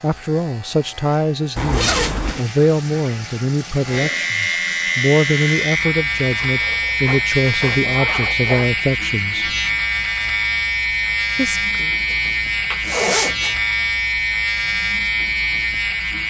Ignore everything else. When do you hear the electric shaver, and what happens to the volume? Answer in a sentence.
You can hear the electric shaver from 0.0 to 16.2 s, getting louder.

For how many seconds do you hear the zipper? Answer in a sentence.
You can hear the zipper for 5 seconds altogether.